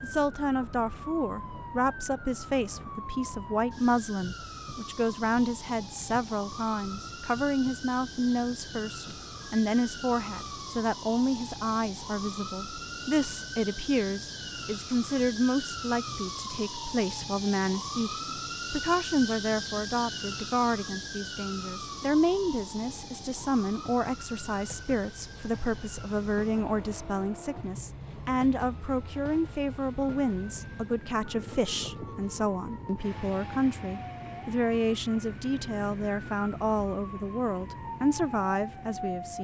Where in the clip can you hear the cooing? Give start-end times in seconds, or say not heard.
not heard.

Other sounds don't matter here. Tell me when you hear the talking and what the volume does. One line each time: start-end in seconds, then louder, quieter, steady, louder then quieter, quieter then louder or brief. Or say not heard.
0.0-39.3 steady.